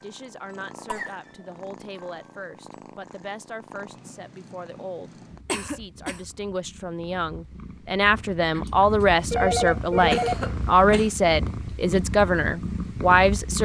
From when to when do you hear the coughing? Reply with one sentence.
You can hear the coughing from 0.8 to 1.6 s, from 5.5 to 6.2 s and from 10.0 to 11.1 s.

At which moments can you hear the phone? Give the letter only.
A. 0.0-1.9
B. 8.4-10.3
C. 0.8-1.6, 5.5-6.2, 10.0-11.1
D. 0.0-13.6
B.